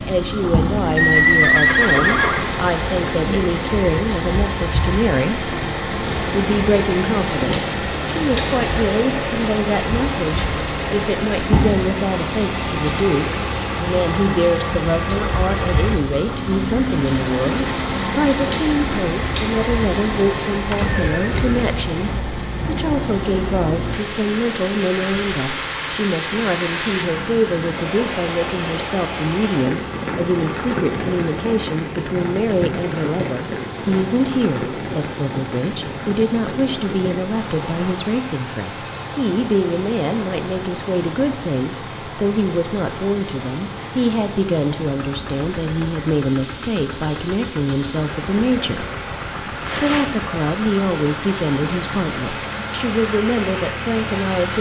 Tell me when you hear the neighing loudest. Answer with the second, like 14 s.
1 s.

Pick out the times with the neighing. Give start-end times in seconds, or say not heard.
0.9-2.5, 20.6-22.2, 49.6-50.3.